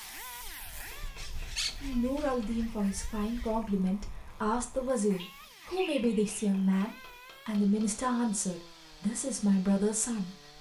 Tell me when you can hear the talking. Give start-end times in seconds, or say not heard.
1.8-10.3.